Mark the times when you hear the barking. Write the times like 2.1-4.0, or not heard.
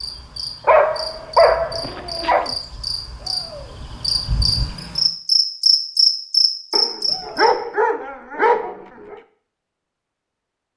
0.7-2.5, 6.7-9.2.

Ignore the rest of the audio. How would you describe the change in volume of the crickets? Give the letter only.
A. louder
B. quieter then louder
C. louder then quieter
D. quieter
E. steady
A.